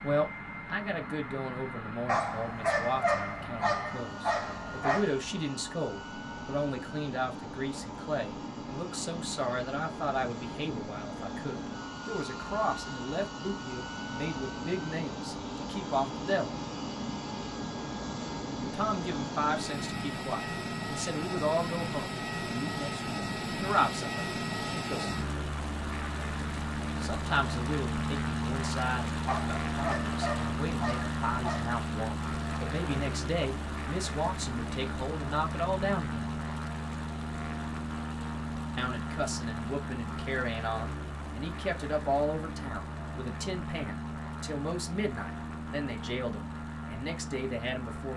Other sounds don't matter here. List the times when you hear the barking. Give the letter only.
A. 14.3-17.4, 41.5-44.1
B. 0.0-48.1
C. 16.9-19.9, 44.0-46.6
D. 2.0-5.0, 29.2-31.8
D.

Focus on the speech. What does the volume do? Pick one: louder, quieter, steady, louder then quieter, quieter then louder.
steady.